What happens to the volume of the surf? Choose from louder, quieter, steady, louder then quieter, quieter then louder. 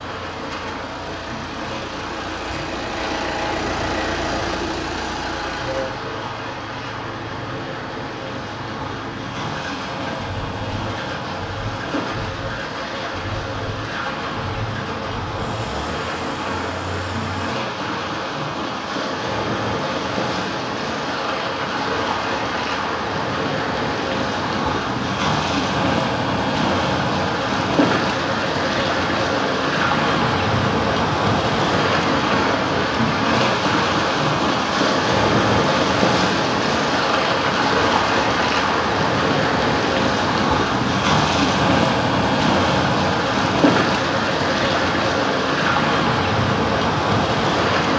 louder.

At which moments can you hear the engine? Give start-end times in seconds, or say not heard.
0.0-17.6.